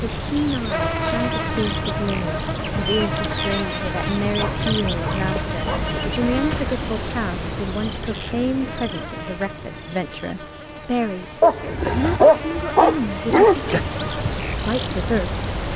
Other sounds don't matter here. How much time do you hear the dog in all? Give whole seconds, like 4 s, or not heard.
4 s.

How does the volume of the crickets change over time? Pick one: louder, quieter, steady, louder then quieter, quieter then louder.
quieter then louder.